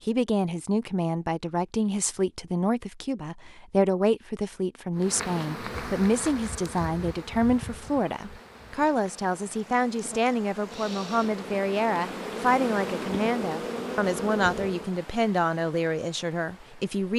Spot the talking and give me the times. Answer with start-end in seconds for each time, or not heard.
0.1-17.1.